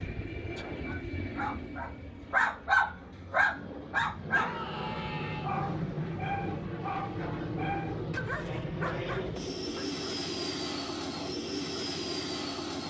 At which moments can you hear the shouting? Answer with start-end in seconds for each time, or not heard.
4.3-5.5.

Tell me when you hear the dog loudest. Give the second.
3 s.